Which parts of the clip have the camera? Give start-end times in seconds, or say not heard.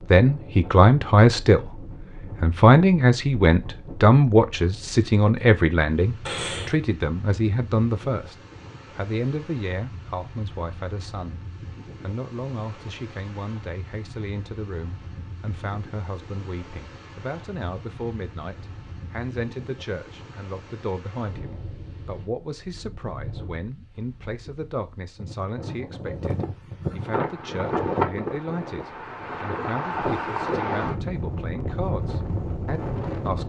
6.2-6.8.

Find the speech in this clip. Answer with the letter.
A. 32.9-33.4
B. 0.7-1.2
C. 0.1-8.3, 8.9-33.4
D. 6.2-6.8
C.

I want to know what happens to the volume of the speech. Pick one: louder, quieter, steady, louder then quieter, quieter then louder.
quieter.